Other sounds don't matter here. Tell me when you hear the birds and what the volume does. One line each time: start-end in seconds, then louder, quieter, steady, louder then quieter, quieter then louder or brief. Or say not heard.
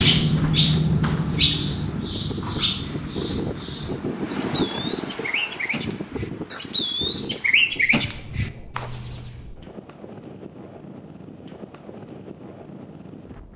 0.0-9.3 quieter then louder.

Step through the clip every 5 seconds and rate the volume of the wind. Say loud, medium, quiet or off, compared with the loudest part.
loud, medium, medium.